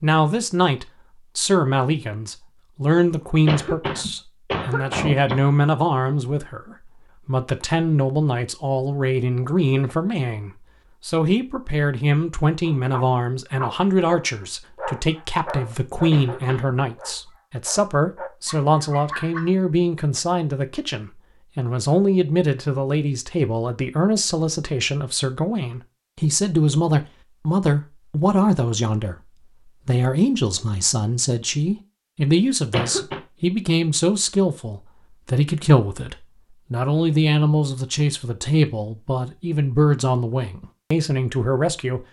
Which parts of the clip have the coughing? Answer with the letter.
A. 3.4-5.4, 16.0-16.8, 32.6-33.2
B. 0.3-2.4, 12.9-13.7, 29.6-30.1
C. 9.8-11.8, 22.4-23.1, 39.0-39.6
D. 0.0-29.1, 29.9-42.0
A.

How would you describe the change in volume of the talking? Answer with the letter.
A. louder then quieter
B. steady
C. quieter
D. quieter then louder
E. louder
B.